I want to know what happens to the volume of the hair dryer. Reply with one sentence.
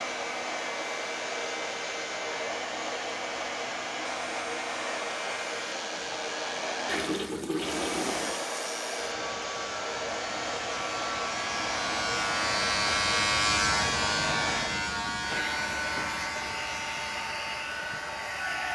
The loudness of the hair dryer stays about the same.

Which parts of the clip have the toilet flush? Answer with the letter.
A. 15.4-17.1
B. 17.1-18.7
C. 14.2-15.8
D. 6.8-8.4
D.